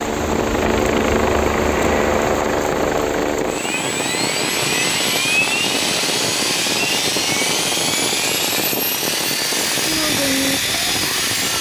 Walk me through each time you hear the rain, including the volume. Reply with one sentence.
The rain can be heard from 0.0 to 11.5 s, at a steady volume.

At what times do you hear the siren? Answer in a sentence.
The siren can't be heard in this clip.